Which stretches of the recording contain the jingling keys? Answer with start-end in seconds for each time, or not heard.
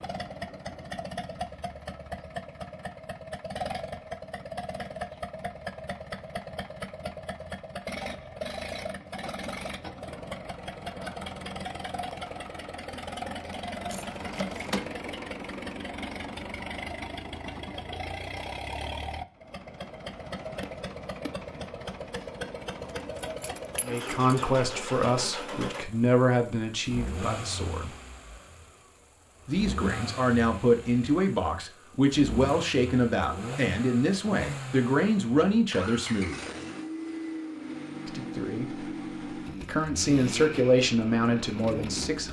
13.8-14.9, 23.2-24.4.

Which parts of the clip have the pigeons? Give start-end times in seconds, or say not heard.
not heard.